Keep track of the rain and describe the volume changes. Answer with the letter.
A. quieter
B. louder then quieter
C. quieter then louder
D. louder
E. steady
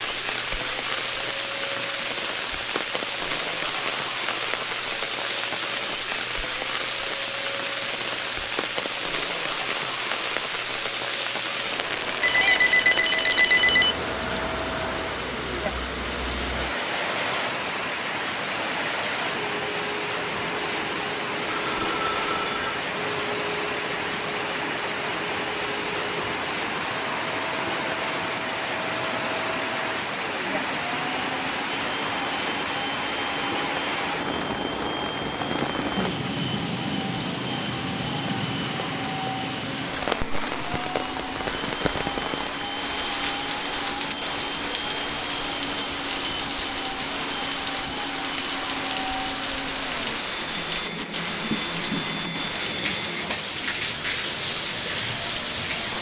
E.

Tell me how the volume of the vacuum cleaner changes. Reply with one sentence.
The loudness of the vacuum cleaner stays about the same.